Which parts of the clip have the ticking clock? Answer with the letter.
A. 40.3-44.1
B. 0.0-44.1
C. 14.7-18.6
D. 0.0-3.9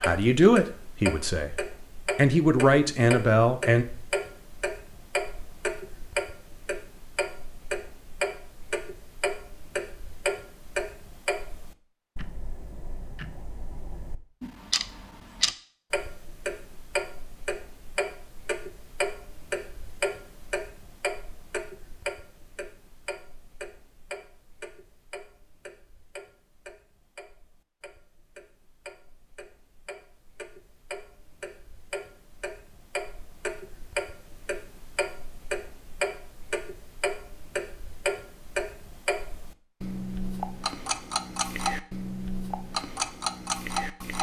B.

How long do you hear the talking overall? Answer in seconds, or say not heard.
4 s.